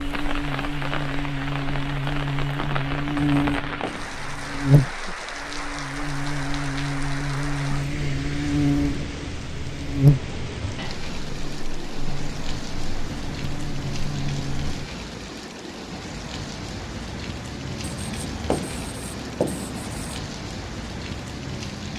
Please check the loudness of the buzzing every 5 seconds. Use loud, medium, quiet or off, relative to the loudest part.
loud, loud, loud, off, off.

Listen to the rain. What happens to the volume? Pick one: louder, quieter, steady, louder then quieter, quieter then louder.
steady.